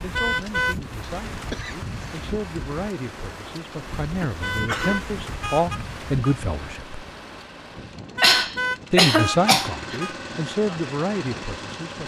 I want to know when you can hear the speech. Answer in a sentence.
You can hear the speech from 0.0 to 7.0 s and from 8.9 to 12.0 s.